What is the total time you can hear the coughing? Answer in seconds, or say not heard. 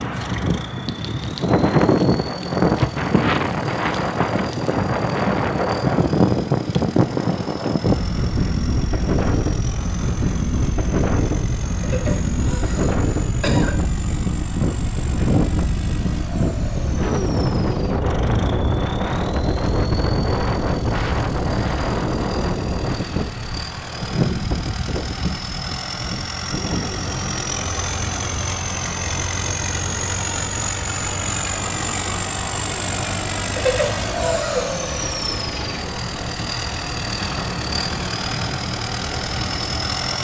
3 s.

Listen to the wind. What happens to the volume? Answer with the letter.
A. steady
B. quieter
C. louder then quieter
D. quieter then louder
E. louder
B.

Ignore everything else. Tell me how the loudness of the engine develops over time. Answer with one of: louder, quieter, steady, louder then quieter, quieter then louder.
louder.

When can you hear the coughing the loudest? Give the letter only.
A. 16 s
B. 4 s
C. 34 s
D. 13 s
C.